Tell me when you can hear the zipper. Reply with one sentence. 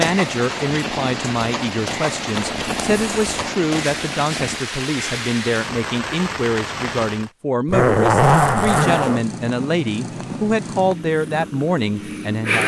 You can hear the zipper from 2.4 to 3.4 s and from 7.7 to 9.2 s.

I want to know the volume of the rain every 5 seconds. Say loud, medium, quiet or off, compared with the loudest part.
loud, loud, off.